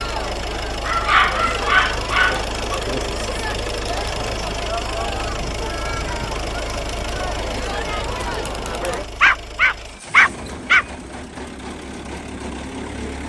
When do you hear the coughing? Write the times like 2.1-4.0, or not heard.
not heard.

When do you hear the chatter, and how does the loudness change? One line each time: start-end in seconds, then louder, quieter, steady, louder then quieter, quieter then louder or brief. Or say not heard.
0.0-9.1 steady.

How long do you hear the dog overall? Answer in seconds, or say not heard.
4 s.